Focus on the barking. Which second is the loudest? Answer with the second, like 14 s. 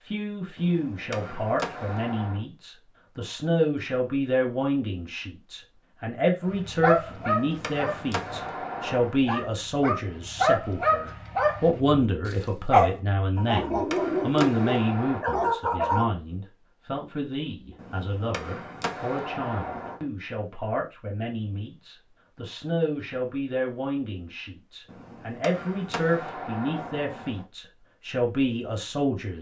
13 s.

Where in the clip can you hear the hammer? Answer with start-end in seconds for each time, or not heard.
0.6-2.5, 7.0-9.2, 13.3-15.2, 17.8-20.0, 24.9-27.4.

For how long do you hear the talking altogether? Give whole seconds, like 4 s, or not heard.
29 s.